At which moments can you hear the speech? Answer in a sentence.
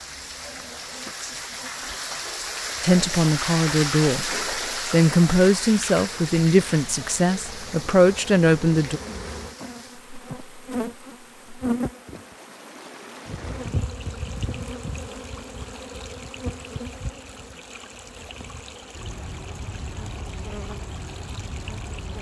You can hear the speech from 2.8 to 9.0 s.